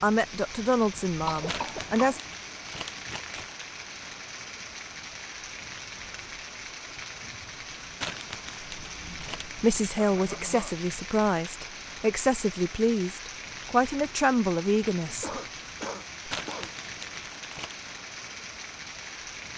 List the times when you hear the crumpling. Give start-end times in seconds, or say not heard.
1.4-3.5, 8.0-9.7, 16.3-17.8.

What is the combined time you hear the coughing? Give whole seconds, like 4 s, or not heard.
3 s.